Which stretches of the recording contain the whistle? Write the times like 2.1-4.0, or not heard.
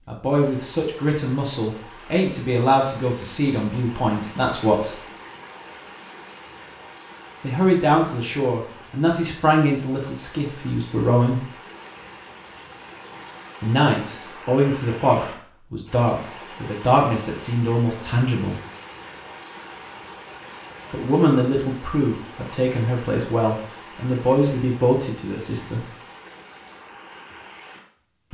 not heard.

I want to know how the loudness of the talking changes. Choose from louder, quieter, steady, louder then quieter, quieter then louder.
steady.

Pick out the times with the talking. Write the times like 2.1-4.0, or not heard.
0.1-5.0, 7.4-11.5, 13.6-18.6, 20.9-25.9.